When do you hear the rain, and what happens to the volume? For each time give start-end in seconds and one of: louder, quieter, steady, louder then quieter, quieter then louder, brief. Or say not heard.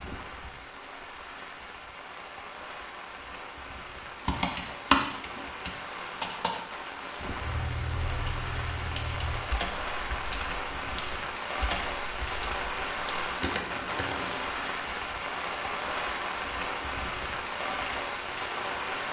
0.0-19.0 louder.